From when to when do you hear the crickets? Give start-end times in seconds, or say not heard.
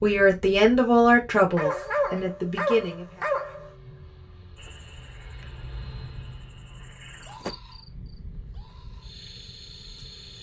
4.5-10.3.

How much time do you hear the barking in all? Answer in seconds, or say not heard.
2 s.